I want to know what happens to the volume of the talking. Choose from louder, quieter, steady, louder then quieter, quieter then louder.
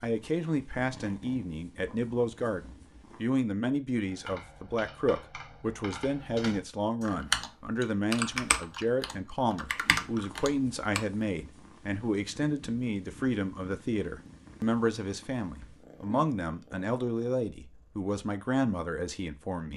steady.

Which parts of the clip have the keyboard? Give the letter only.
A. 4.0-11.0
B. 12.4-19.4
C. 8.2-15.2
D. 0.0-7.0
A.